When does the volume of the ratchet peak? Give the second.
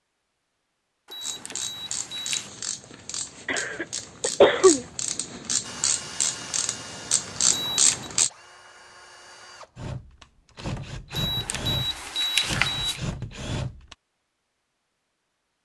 8 s.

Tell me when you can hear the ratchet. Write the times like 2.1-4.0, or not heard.
1.2-8.3.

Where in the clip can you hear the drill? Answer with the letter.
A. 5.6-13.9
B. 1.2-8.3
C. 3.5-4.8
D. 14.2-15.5
A.